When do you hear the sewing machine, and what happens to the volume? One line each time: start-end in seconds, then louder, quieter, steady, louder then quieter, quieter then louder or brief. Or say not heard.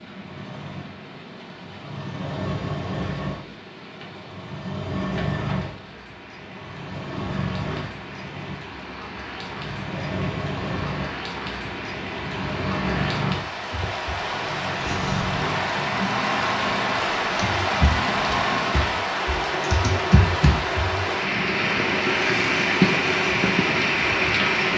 0.0-24.7 steady.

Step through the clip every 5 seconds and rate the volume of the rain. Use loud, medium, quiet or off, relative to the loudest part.
quiet, quiet, medium, loud, loud.